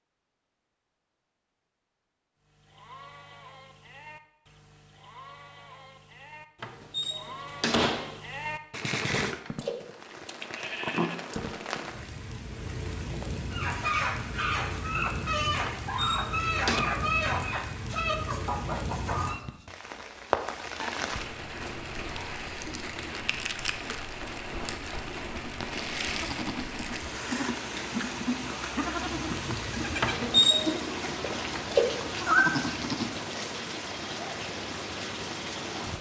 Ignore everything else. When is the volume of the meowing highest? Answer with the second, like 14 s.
32 s.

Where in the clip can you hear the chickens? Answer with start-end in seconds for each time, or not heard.
13.5-19.4.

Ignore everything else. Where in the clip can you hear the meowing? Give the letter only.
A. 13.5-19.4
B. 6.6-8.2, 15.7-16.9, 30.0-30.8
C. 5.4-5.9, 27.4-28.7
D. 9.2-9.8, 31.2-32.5
D.